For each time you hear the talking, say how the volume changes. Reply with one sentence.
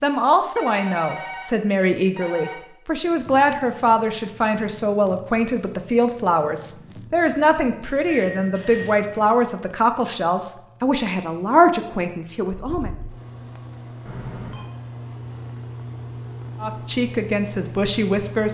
You can hear the talking from 0.0 to 12.9 s, at a steady volume; and briefly from 16.6 to 18.4 s.